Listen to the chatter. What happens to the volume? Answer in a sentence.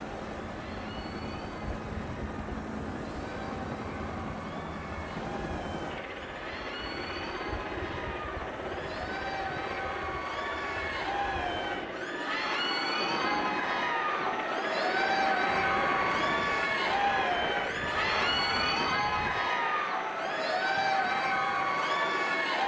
The loudness of the chatter goes up.